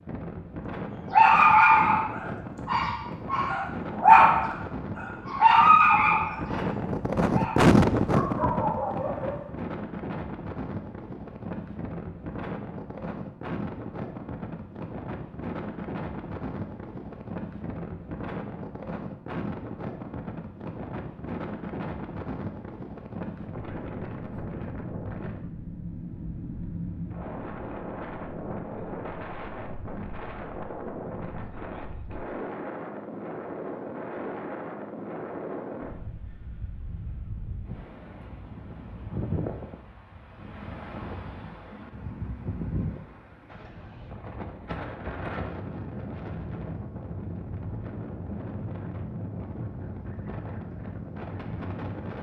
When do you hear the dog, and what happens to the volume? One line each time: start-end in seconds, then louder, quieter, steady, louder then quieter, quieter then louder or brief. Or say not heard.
1.1-9.4 quieter.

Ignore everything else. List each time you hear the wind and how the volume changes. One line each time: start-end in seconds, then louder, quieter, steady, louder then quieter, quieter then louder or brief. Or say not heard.
0.0-52.1 quieter.